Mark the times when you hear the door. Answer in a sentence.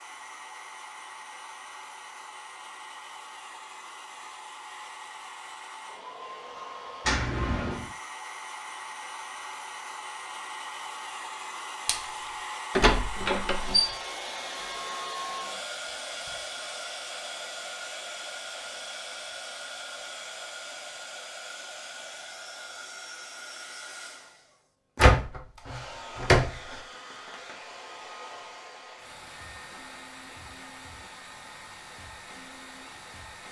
The door can be heard from 7.0 to 7.9 s, from 12.8 to 13.8 s and from 24.9 to 26.6 s.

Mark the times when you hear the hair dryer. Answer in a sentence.
The hair dryer can be heard from 0.0 to 33.4 s.